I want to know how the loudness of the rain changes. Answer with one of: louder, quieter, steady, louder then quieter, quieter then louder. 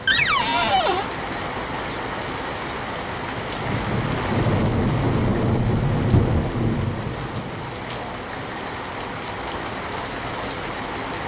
louder then quieter.